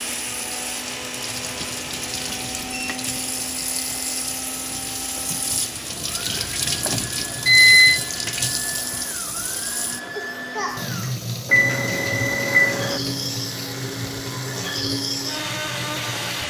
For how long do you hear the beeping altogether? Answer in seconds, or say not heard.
4 s.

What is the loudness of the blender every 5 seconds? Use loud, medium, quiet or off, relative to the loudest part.
medium, medium, loud, loud.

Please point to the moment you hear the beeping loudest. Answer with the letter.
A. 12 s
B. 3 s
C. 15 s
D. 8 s
D.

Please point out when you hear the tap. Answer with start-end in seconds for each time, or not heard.
0.0-16.4.